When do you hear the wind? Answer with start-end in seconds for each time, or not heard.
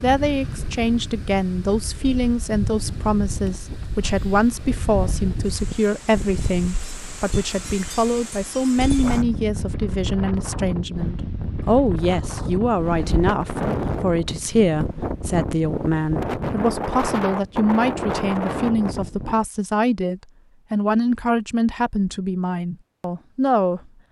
0.0-19.4.